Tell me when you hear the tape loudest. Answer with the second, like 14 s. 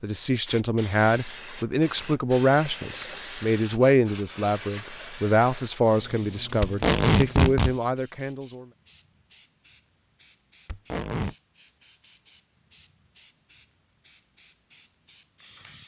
7 s.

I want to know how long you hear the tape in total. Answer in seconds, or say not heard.
3 s.